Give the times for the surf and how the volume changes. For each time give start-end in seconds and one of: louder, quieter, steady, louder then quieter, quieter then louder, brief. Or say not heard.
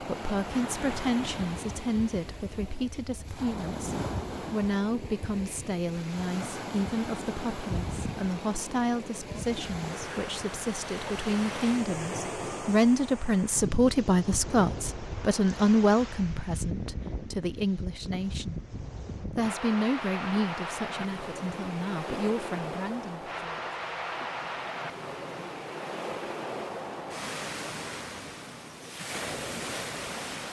0.0-30.4 steady.